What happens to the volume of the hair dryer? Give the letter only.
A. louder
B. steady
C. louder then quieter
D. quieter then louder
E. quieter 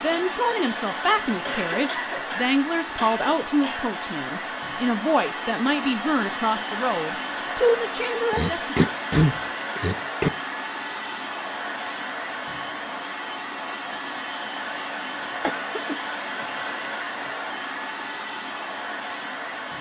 B.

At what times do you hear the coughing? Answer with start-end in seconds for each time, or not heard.
1.4-4.0, 8.3-10.3, 15.4-16.0.